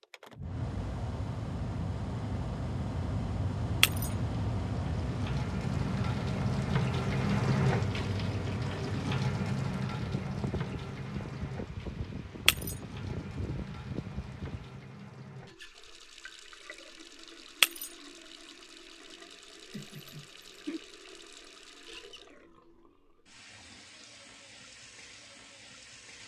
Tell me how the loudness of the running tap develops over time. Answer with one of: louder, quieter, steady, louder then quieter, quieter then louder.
quieter.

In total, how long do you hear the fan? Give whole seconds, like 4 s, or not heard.
15 s.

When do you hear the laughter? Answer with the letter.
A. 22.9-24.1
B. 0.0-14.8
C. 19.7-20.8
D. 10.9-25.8
C.